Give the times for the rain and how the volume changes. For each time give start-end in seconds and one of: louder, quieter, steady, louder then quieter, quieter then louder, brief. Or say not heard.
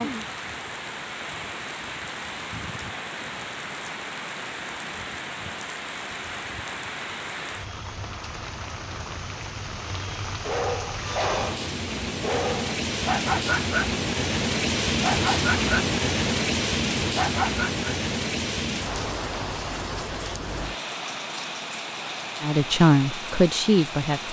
0.0-24.2 louder then quieter.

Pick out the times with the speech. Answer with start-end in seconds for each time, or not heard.
22.4-24.2.